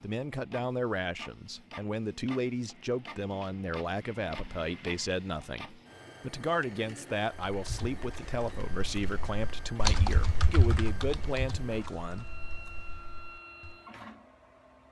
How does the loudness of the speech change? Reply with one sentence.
The volume of the speech stays about the same.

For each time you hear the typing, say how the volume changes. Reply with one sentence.
The typing can be heard from 7.5 to 13.8 s, getting louder then quieter.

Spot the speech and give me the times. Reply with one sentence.
The speech can be heard from 0.0 to 12.4 s.